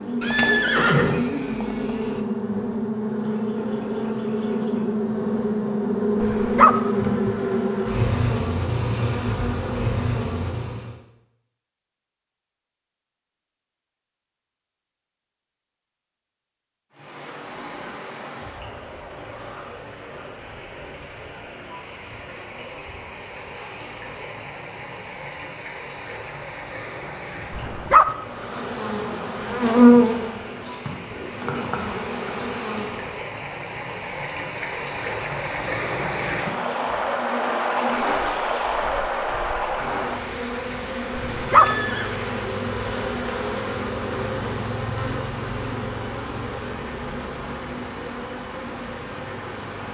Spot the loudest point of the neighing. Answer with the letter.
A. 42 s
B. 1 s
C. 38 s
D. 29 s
B.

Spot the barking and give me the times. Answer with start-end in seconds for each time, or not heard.
6.2-6.8, 27.5-28.1, 41.1-41.8.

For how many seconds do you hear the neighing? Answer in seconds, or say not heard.
3 s.